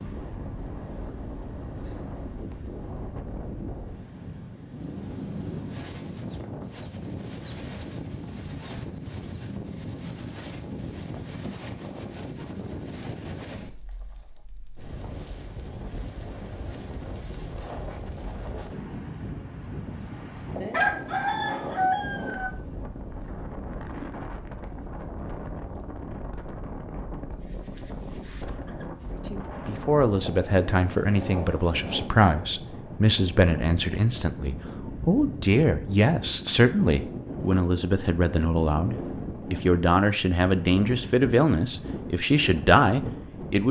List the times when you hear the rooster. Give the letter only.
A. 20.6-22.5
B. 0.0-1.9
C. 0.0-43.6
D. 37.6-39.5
A.